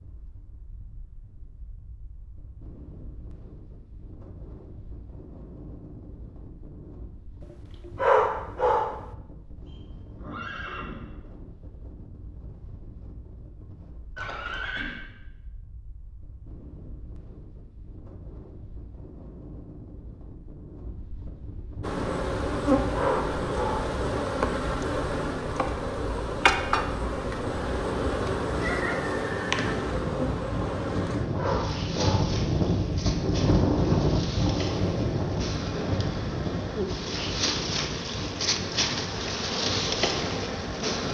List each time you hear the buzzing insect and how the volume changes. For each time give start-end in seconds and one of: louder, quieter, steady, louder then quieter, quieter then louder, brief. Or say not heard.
21.8-41.0 quieter then louder.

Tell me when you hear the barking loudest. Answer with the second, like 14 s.
8 s.